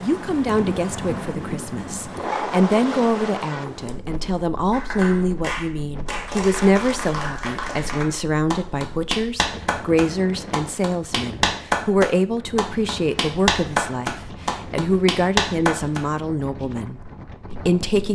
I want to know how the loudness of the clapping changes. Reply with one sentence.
The volume of the clapping goes up.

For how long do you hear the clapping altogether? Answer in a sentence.
You can hear the clapping for 11 seconds altogether.